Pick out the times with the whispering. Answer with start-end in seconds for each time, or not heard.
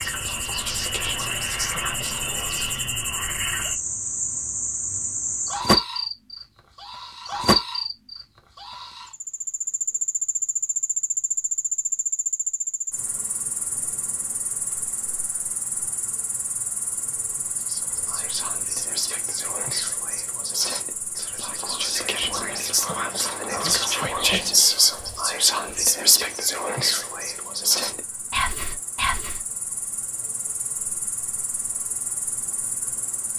0.0-2.8, 17.6-29.4.